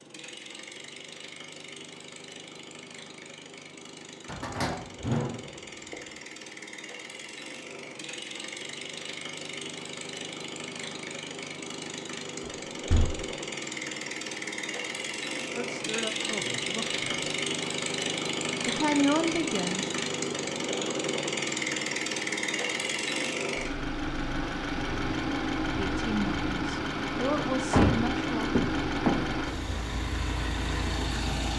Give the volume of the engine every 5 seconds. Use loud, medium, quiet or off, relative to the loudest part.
quiet, medium, medium, loud, loud, loud, loud.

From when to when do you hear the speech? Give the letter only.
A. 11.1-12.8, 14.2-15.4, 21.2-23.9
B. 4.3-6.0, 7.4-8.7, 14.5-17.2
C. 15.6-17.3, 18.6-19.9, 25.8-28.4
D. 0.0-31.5
C.